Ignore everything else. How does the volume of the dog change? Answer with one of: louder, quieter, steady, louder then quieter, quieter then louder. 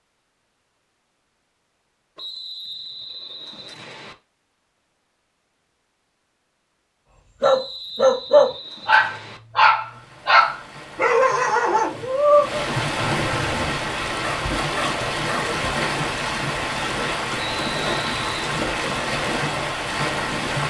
quieter.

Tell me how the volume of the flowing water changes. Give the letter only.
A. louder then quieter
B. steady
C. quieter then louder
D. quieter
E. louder
E.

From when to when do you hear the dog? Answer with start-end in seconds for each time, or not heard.
7.4-15.4.